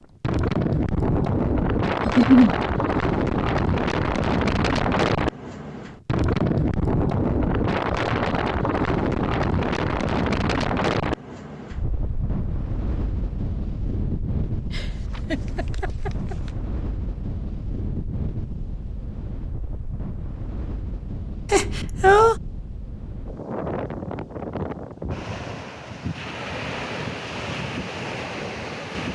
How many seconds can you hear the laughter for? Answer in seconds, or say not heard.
3 s.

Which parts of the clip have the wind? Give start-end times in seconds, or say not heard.
0.2-29.1.